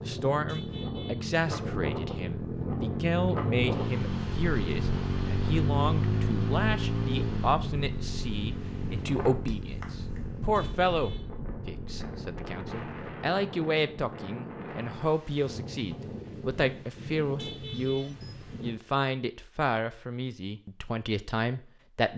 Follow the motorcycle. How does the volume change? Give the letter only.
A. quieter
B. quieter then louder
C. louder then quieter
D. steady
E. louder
C.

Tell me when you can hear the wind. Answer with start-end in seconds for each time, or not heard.
0.0-18.8.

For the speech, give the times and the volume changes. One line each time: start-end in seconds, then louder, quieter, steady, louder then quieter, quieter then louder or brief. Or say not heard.
0.0-22.1 steady.